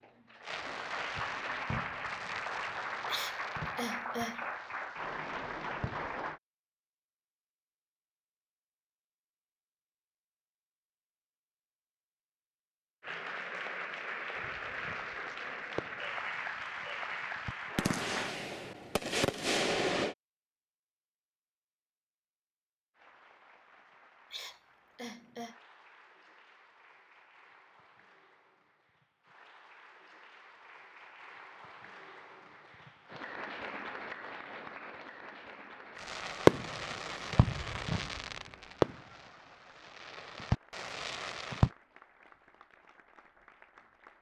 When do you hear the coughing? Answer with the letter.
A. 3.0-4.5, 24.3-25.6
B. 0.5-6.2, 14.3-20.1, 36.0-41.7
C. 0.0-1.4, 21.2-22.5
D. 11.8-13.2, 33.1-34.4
A.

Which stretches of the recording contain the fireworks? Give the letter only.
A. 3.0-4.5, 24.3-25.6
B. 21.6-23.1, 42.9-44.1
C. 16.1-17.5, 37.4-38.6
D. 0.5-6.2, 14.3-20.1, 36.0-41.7
D.